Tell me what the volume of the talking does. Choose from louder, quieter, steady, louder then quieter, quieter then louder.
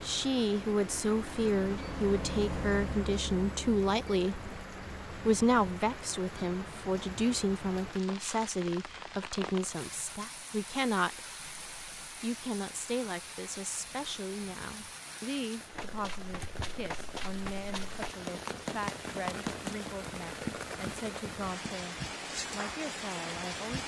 quieter.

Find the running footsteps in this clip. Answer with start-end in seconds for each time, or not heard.
15.7-22.9.